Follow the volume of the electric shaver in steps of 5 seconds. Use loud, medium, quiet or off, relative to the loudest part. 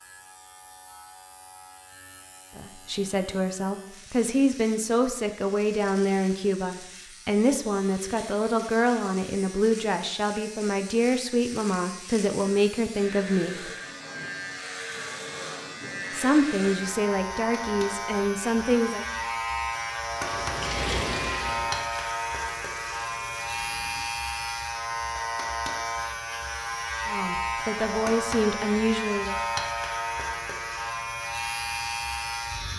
quiet, quiet, medium, loud, loud, loud, loud.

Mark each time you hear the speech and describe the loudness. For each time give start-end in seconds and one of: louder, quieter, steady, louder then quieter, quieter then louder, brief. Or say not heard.
2.5-13.7 steady
16.1-19.1 brief
27.1-29.4 brief.